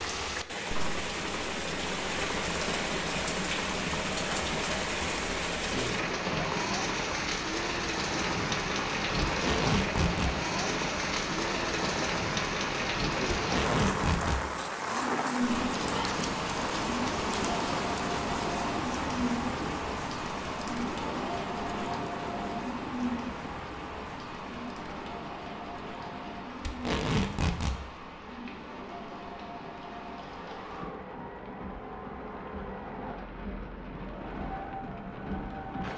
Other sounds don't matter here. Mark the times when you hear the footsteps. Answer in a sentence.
You can't hear the footsteps here.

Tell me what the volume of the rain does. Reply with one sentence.
The loudness of the rain goes down.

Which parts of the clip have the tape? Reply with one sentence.
You can hear the tape from 9.2 to 10.3 s, from 13.3 to 14.4 s and from 26.6 to 27.8 s.